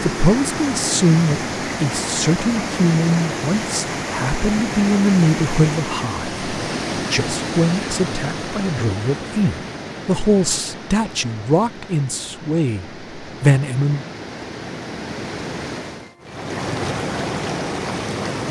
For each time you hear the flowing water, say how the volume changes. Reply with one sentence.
The flowing water can be heard from 0.0 to 18.4 s, getting quieter then louder.